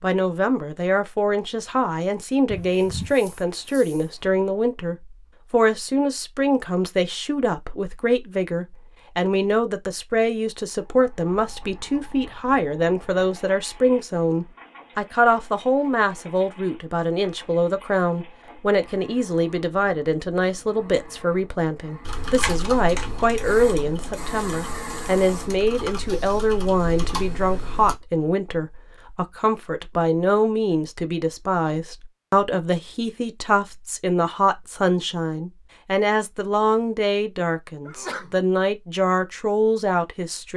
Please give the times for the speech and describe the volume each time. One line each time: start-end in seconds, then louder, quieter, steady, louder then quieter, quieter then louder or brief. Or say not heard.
0.0-40.5 steady.